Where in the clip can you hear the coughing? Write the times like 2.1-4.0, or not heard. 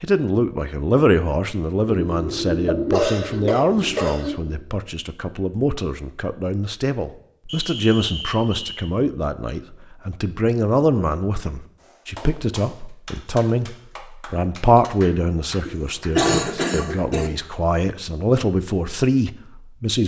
1.9-4.6, 15.7-17.3.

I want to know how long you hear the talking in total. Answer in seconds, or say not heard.
20 s.